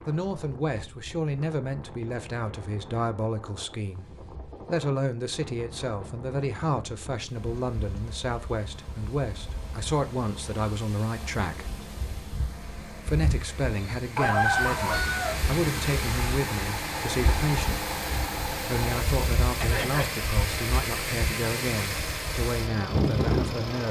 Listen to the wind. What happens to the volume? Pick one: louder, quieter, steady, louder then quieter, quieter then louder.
louder.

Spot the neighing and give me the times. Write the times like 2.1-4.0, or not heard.
19.6-20.2.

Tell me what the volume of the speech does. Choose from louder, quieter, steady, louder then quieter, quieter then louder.
steady.